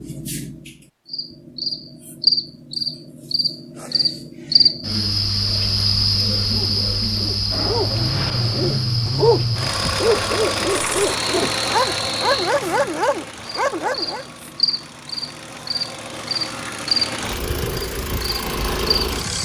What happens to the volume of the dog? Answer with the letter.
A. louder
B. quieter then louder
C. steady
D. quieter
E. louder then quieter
A.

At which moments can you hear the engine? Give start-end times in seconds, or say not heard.
7.7-19.4.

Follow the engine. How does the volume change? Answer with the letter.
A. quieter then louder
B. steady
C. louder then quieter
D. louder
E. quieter
A.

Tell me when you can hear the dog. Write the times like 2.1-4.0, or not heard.
6.5-14.2.